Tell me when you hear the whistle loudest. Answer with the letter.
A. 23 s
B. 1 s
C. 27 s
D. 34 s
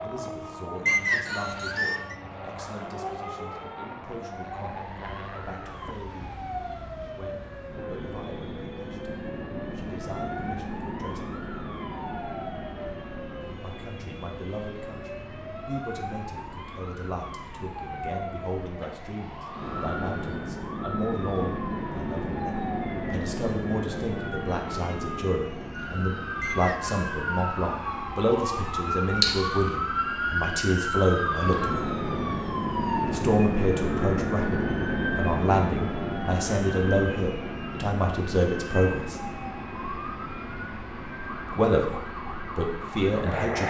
B.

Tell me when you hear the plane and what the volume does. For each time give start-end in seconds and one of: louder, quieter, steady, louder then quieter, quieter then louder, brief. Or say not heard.
0.0-43.6 louder.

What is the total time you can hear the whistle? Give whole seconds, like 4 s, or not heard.
2 s.